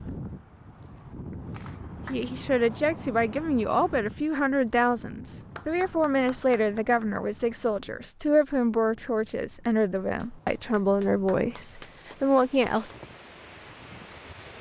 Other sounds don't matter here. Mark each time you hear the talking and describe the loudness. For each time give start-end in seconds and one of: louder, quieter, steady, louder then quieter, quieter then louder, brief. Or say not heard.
2.0-12.9 steady.